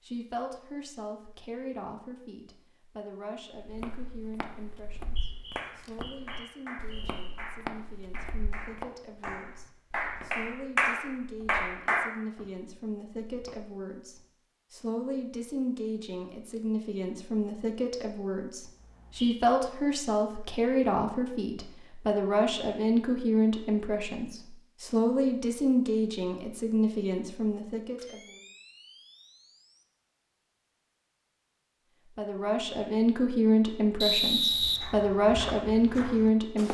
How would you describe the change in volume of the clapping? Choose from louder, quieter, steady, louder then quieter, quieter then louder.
louder.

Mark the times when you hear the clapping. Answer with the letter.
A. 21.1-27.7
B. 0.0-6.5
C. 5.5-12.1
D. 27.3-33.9
C.